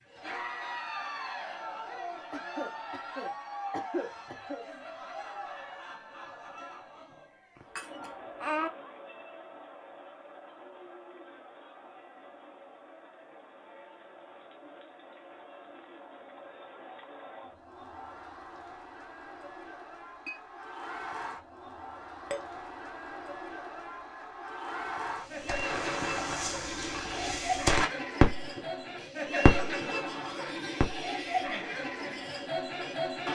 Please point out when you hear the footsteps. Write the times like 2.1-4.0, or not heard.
not heard.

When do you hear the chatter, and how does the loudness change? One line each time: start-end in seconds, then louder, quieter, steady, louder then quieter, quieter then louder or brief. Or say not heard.
0.1-33.3 quieter then louder.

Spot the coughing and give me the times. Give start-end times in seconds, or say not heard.
2.3-4.7.